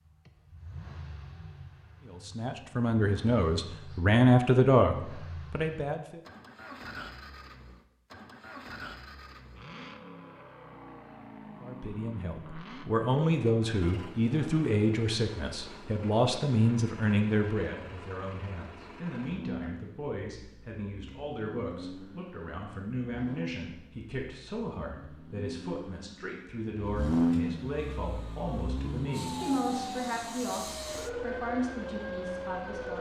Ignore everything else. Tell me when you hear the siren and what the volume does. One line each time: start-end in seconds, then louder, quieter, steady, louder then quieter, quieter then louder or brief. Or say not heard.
27.7-32.9 louder.